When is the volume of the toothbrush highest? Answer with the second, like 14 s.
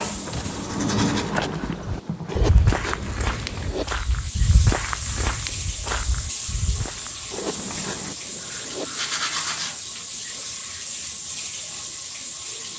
1 s.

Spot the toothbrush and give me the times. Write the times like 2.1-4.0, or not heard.
0.0-3.9, 7.3-9.8.